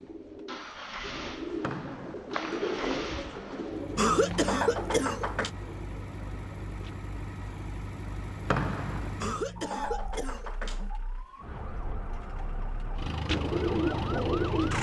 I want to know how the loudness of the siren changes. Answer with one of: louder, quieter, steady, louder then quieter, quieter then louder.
quieter then louder.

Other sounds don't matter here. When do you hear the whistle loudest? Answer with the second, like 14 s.
9 s.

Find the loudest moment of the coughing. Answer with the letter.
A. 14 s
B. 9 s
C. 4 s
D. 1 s
C.